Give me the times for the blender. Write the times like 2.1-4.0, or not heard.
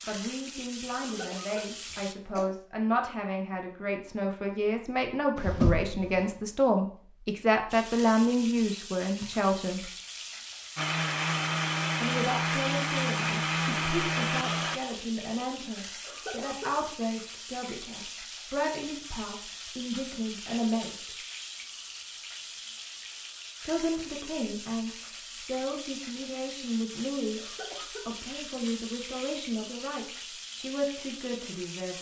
10.8-14.8.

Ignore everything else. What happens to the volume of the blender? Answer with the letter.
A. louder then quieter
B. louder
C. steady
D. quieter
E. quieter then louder
C.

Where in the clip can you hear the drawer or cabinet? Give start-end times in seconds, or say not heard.
5.3-6.2.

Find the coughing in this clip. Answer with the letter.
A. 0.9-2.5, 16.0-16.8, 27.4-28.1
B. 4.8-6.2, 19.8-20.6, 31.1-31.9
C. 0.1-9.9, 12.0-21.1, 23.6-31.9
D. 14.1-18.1
A.